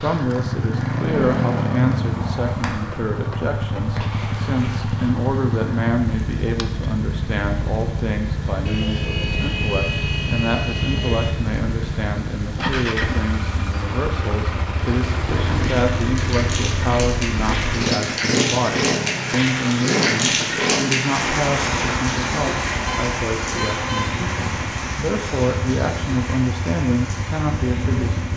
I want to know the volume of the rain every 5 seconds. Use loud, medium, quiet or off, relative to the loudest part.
quiet, quiet, quiet, loud, loud, medium.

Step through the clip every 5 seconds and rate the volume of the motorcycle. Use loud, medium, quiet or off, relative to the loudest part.
loud, loud, loud, loud, loud, medium.